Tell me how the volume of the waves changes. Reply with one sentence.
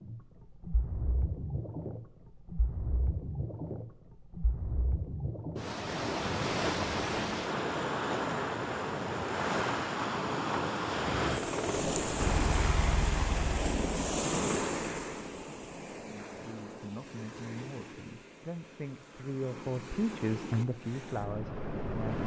The volume of the waves goes up, then down.